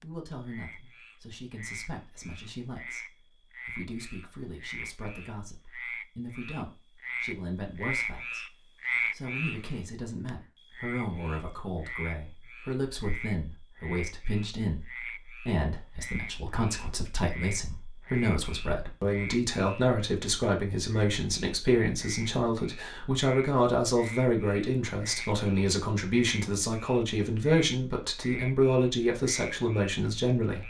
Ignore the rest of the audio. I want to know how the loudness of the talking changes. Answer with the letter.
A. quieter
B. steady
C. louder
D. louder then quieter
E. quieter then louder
C.